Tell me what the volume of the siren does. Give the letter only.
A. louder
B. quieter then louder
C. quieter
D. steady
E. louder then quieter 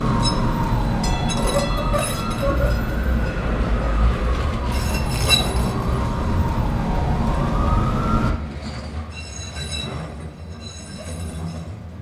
B.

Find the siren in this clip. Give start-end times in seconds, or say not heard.
0.0-8.3.